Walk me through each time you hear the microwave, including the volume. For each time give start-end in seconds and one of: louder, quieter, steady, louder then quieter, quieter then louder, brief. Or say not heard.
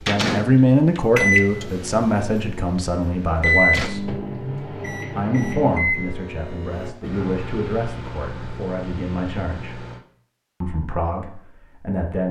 0.0-10.0 quieter.